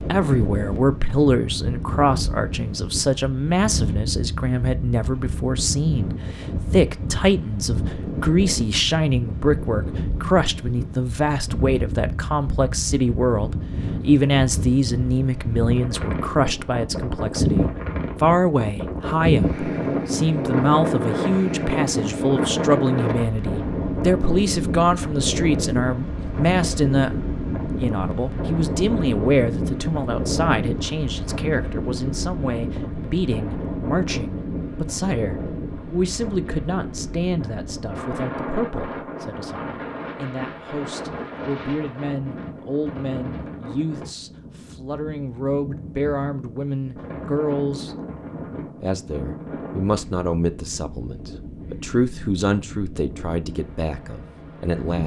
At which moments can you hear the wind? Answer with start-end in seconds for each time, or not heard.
0.0-55.0.